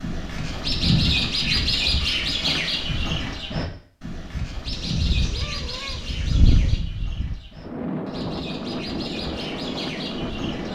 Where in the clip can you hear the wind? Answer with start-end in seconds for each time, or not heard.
4.3-10.7.